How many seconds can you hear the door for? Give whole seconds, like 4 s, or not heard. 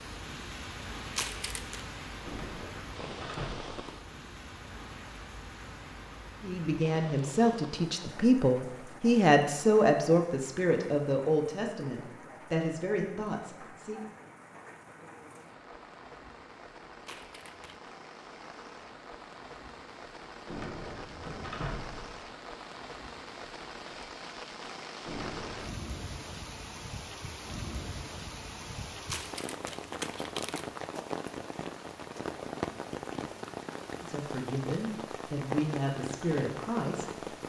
4 s.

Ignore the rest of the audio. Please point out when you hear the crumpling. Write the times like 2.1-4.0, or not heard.
1.1-1.9, 17.1-17.8, 29.1-30.7.